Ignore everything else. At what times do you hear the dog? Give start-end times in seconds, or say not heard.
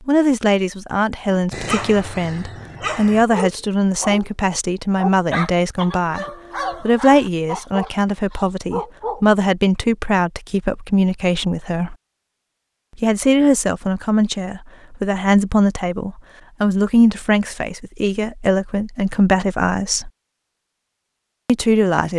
1.2-4.3, 5.0-9.2.